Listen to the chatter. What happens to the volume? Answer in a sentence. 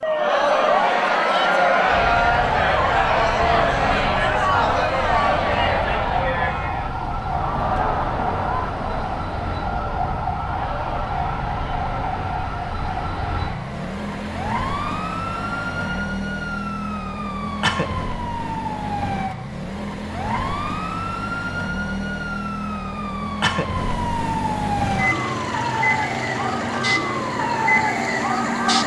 The volume of the chatter goes down.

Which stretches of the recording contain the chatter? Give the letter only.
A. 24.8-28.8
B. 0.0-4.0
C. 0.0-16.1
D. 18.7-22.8
C.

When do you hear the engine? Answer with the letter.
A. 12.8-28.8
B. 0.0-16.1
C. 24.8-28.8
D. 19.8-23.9
C.